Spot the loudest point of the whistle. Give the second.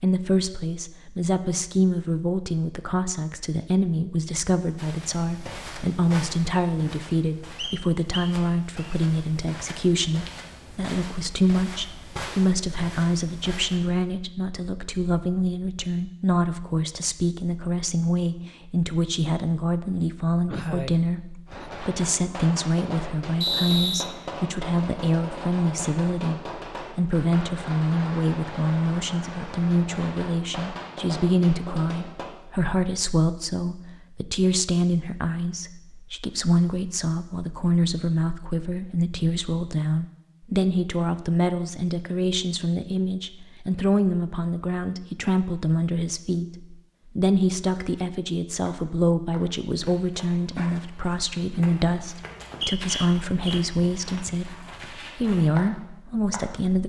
24 s.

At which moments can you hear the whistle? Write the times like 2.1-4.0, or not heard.
7.5-8.9, 23.4-24.1, 52.4-53.6.